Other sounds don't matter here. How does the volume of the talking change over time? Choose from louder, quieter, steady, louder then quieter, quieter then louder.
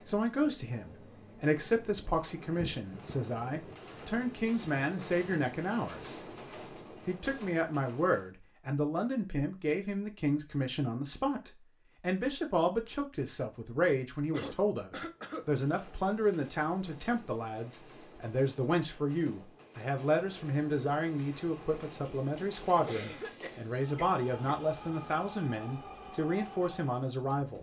steady.